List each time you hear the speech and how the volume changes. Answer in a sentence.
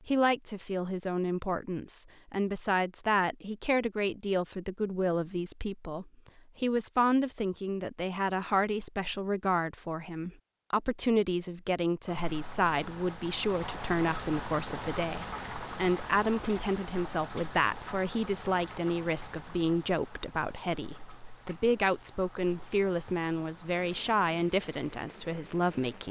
You can hear the speech from 0.1 to 26.0 s, at a steady volume.